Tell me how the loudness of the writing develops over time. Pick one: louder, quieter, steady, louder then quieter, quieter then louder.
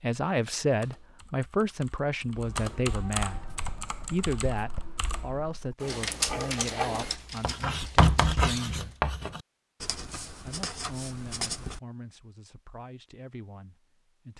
louder then quieter.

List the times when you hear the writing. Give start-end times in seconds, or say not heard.
3.4-11.8.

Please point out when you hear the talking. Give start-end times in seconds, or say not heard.
0.0-8.9, 10.4-14.3.